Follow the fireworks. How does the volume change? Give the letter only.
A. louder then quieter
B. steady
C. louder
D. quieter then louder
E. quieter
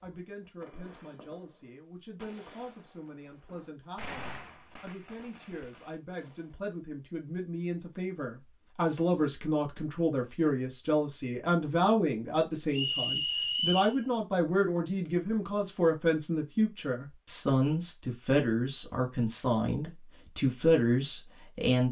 A.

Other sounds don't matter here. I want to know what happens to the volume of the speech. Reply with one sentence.
The loudness of the speech goes up.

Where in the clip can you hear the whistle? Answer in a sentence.
You can hear the whistle from 12.7 to 13.9 s.